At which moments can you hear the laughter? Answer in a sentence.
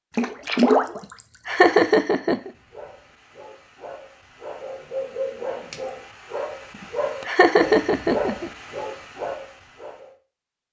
You can hear the laughter from 1.4 to 2.5 s and from 7.2 to 8.5 s.